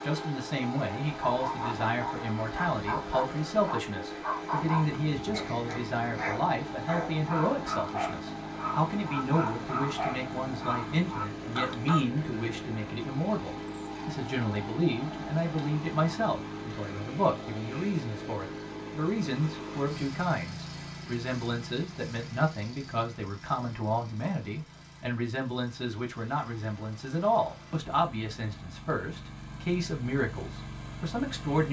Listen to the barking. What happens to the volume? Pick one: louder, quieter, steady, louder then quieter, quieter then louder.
steady.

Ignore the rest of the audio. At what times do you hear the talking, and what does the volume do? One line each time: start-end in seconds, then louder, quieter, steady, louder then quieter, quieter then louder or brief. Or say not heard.
0.0-31.6 steady.